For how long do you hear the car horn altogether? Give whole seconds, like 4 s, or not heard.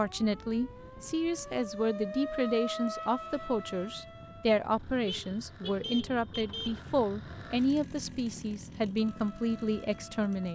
2 s.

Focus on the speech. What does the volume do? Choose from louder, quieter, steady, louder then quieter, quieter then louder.
steady.